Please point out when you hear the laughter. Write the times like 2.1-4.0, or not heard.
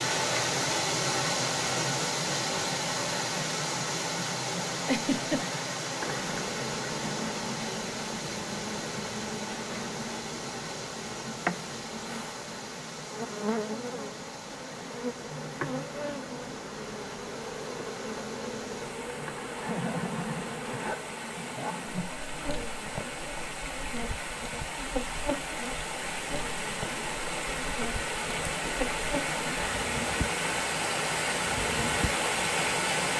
4.8-5.5, 19.6-22.1.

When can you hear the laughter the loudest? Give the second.
5 s.